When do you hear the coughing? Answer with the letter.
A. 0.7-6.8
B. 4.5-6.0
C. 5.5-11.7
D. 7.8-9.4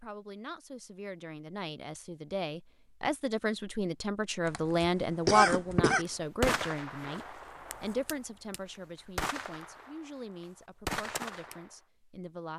B.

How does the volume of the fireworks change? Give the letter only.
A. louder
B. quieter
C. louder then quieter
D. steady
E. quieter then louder
E.